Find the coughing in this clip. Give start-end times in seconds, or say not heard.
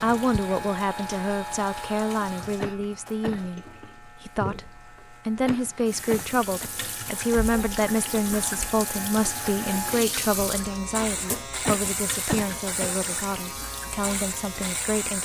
2.5-3.5, 5.5-7.5, 11.7-13.1.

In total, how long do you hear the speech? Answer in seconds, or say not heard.
15 s.